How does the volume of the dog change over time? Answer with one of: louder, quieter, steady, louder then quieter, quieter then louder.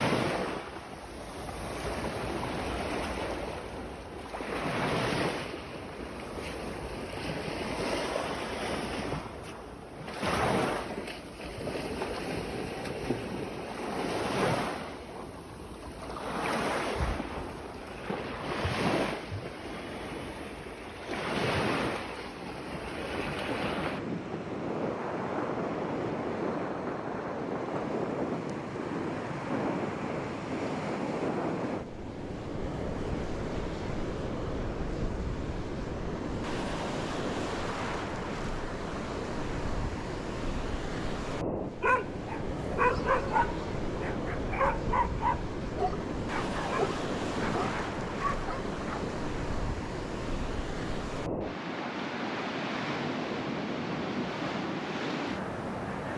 quieter.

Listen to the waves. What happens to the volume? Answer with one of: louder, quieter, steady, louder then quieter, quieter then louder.
steady.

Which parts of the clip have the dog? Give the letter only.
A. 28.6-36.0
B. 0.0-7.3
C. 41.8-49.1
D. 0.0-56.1
C.